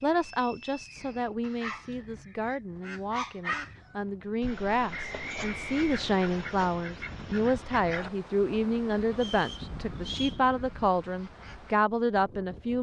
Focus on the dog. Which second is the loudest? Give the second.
3 s.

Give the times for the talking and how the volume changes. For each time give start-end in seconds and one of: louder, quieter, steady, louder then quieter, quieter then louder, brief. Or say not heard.
0.0-12.7 louder.